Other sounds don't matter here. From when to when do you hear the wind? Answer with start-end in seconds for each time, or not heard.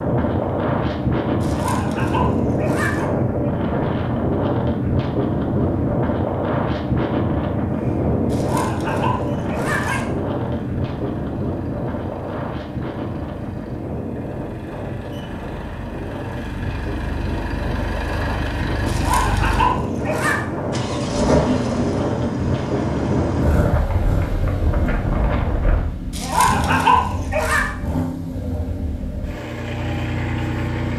0.0-25.9.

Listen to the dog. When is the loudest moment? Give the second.
27 s.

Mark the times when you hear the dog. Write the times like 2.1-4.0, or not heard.
1.4-3.0, 8.3-10.1, 18.9-20.4, 26.1-27.6.